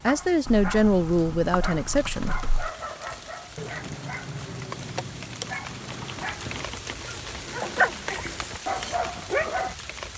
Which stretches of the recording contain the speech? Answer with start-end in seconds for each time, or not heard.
0.1-2.4.